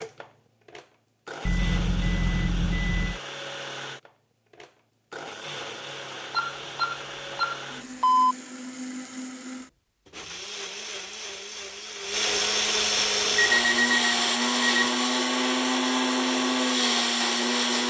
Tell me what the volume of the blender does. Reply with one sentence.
The loudness of the blender goes up.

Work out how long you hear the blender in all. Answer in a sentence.
You can hear the blender for 18 seconds altogether.